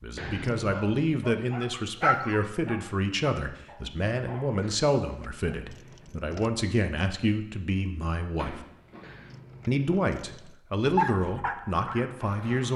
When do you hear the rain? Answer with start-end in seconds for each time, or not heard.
not heard.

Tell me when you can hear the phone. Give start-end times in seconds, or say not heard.
8.3-9.2.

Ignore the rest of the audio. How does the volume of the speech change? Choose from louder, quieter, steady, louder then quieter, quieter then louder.
steady.